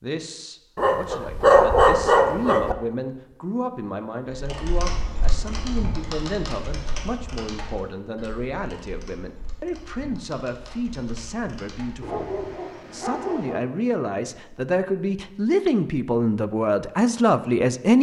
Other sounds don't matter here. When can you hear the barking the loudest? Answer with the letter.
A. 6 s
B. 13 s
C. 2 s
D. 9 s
C.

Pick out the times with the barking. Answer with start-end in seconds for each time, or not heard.
0.8-2.8, 12.0-13.6.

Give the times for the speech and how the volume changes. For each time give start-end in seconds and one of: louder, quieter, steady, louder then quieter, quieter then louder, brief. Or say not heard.
0.0-17.9 louder.